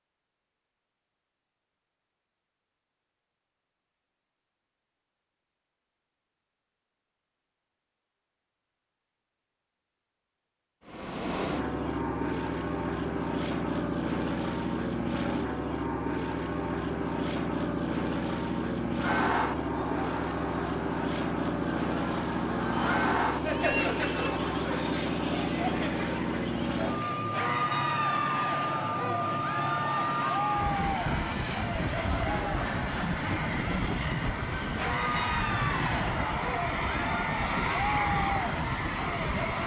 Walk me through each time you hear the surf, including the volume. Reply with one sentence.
The surf can't be heard in this clip.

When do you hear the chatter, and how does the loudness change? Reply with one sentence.
You can hear the chatter from 19.0 to 39.6 s, at a steady volume.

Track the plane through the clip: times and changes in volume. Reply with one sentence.
The plane can be heard from 10.8 to 39.6 s, at a steady volume.